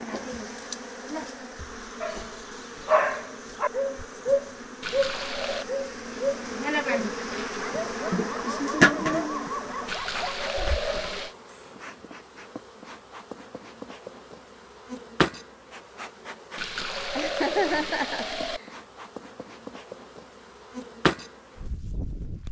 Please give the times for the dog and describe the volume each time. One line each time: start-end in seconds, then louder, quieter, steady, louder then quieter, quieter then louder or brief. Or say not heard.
2.0-11.1 quieter.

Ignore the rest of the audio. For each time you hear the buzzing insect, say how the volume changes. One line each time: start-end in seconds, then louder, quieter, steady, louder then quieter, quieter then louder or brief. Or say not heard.
0.0-22.4 louder then quieter.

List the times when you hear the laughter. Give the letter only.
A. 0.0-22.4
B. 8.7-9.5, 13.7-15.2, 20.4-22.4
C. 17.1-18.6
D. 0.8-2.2
C.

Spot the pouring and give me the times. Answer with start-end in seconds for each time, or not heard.
4.8-5.7, 9.8-11.3, 16.6-18.6.